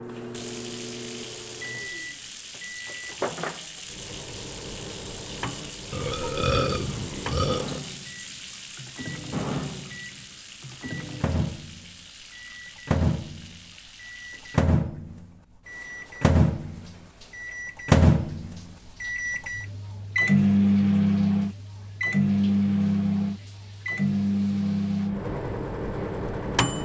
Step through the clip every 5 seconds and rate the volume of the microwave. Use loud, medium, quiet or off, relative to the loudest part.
quiet, quiet, medium, loud, loud, medium.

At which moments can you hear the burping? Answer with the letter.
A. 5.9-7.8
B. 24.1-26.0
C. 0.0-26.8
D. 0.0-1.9
A.